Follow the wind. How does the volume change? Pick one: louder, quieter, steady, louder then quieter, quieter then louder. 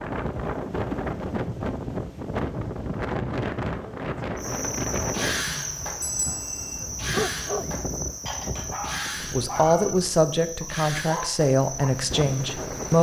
quieter.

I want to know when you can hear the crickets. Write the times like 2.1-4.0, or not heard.
4.3-12.9.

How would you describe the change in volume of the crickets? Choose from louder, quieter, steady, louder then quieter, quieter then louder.
quieter.